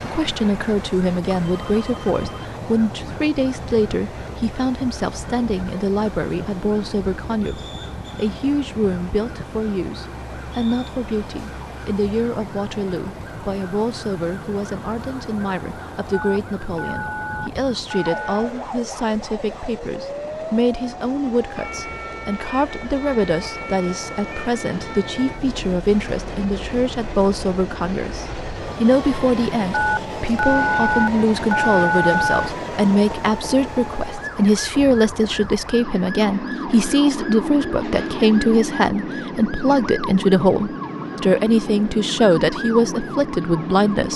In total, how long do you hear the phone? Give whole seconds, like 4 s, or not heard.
6 s.